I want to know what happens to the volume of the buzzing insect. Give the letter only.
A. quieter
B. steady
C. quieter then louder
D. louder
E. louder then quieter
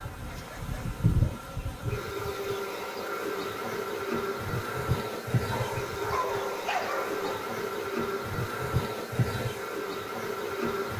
B.